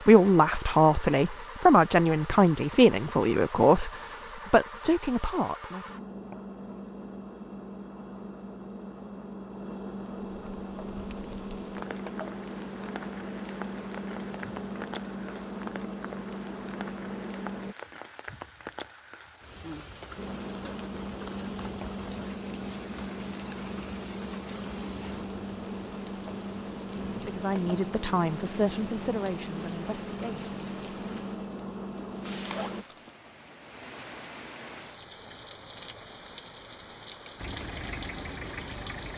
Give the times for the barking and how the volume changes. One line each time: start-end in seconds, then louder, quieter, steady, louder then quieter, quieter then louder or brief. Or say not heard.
not heard.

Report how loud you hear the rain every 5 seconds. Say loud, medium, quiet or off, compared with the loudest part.
off, off, loud, loud, loud, loud, loud, loud.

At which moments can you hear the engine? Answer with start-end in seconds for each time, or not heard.
0.0-17.8, 20.1-32.9, 37.4-39.1.